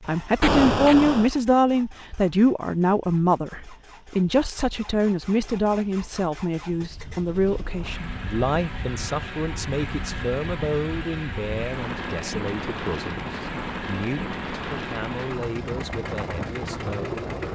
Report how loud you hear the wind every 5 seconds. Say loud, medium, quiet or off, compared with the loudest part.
off, medium, loud, loud.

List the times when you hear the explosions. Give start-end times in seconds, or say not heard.
0.4-1.3.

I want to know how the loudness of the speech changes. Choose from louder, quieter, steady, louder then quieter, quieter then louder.
quieter.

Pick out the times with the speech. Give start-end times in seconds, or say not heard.
0.1-17.3.